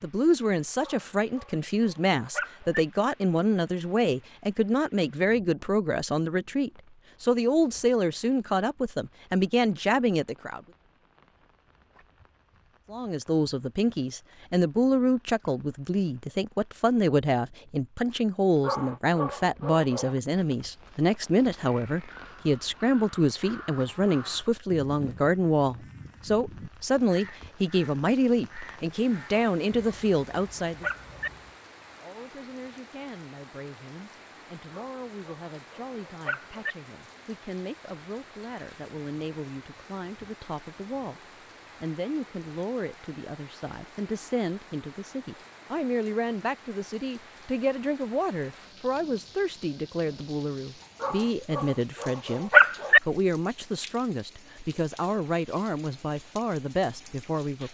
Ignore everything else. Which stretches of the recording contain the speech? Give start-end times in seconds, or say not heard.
0.0-10.6, 12.9-30.9, 32.0-41.2, 41.8-57.6.